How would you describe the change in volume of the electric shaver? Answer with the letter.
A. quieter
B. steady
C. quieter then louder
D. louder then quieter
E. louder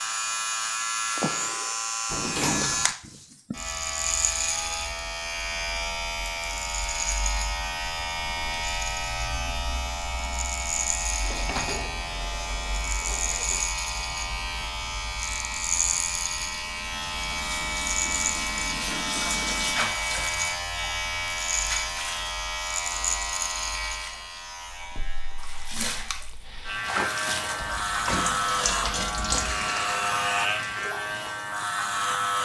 B.